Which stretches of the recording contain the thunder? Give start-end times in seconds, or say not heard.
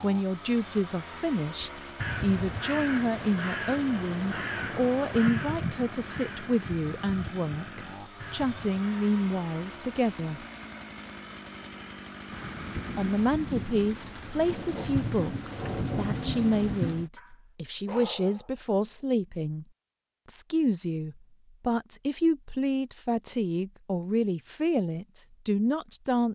12.3-17.1.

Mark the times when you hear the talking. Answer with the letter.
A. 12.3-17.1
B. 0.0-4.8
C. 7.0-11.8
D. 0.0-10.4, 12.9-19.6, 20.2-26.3
D.